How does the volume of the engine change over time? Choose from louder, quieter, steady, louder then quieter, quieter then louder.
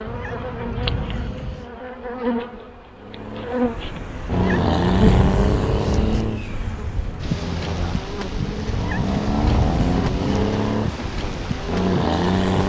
quieter then louder.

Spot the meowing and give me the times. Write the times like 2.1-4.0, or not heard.
0.1-1.7, 4.3-6.2, 8.7-10.6.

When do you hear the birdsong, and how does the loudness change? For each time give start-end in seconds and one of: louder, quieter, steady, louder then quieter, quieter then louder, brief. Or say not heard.
not heard.